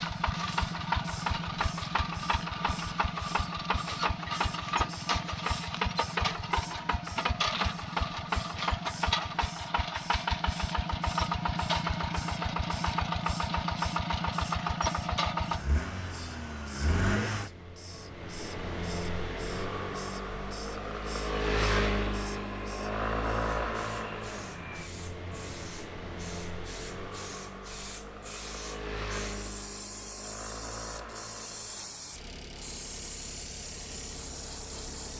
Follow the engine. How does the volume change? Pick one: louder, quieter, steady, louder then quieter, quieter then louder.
quieter.